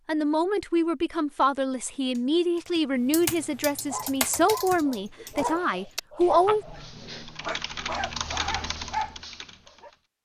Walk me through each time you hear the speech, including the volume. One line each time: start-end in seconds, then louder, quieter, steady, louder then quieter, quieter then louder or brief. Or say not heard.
0.1-6.7 steady.